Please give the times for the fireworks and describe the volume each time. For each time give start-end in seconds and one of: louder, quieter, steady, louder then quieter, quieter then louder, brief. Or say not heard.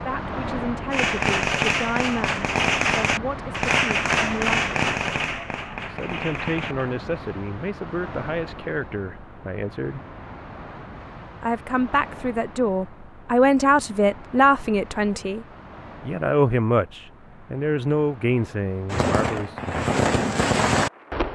0.9-6.9 quieter
18.9-21.2 brief.